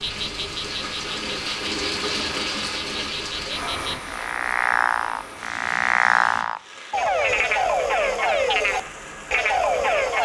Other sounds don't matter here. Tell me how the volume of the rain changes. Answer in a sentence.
The volume of the rain goes down.